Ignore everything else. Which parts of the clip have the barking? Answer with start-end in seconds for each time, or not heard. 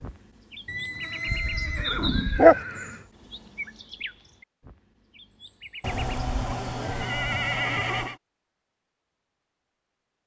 1.2-2.5.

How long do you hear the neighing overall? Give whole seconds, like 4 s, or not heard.
5 s.